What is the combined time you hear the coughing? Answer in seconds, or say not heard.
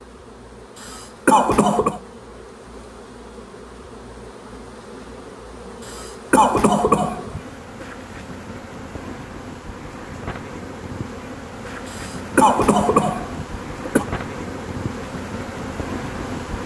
5 s.